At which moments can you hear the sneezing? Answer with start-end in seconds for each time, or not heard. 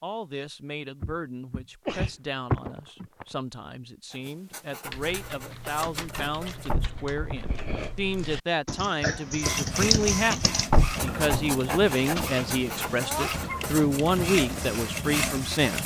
1.9-3.2, 6.8-8.0, 12.9-13.7.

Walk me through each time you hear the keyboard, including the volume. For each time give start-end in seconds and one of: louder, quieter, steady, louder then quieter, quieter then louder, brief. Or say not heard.
4.8-14.9 louder then quieter.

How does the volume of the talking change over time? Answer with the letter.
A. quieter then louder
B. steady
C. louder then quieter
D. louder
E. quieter
D.